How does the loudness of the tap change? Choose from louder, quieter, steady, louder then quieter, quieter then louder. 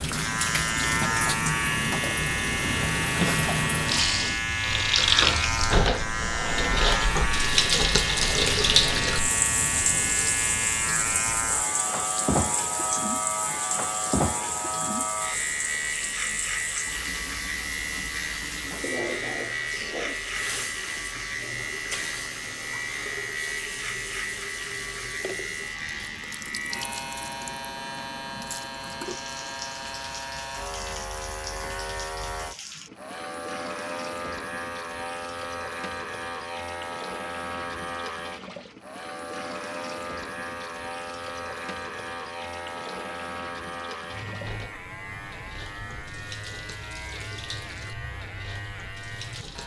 quieter.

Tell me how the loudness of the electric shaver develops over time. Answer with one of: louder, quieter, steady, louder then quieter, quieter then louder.
quieter.